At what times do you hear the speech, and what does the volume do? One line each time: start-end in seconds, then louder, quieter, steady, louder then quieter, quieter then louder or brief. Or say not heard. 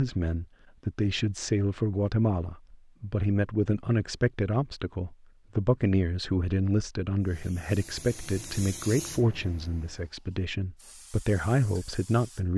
0.0-12.5 steady.